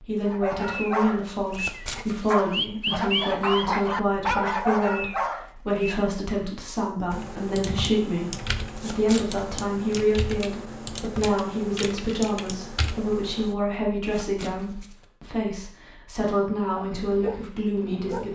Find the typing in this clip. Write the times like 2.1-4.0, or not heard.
7.1-13.6.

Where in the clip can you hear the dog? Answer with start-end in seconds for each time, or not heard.
0.2-6.0, 16.7-18.3.